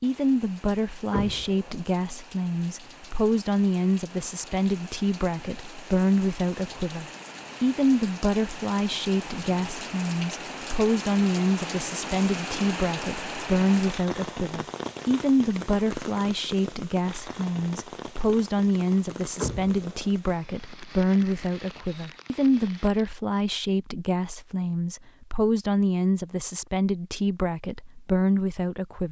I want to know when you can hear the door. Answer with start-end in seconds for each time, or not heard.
1.1-1.8, 19.4-20.1.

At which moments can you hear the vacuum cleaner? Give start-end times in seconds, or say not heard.
not heard.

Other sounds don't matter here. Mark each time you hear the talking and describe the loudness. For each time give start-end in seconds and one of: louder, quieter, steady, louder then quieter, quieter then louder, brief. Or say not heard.
0.0-29.0 steady.